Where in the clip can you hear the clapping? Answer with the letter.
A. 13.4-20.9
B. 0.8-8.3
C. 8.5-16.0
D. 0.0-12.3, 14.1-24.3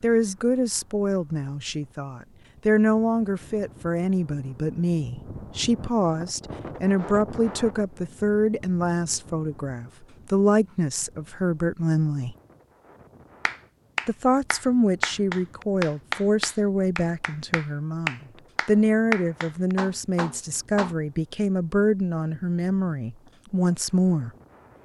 A.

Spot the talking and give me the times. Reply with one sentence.
You can hear the talking from 0.0 to 12.3 s and from 14.1 to 24.3 s.